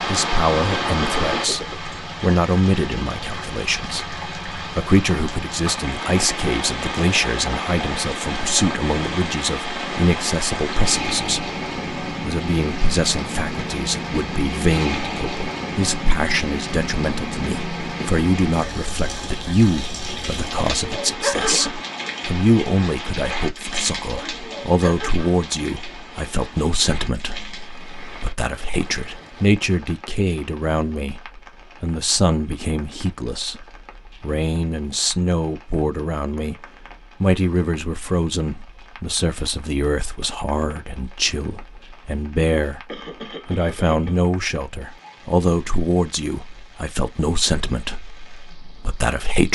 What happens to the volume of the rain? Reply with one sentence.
The loudness of the rain goes down.